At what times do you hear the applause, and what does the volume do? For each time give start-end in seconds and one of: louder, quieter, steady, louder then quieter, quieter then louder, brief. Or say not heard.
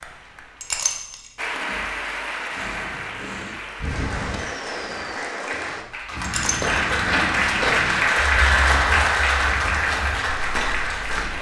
0.0-11.3 louder.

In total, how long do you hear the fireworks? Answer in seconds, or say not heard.
3 s.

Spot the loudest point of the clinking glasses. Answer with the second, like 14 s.
1 s.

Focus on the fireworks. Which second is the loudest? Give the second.
4 s.